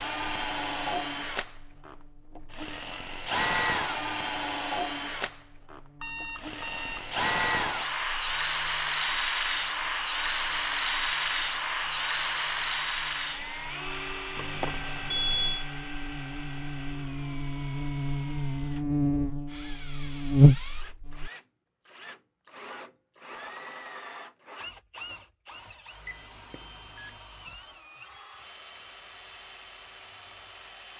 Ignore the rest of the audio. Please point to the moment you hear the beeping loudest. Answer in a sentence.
The volume of the beeping peaks at 15 seconds.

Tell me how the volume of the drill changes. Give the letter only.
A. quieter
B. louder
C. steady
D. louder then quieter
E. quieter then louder
A.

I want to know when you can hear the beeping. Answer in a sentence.
The beeping can be heard from 6.0 to 7.1 s, from 14.3 to 15.7 s and from 26.1 to 27.2 s.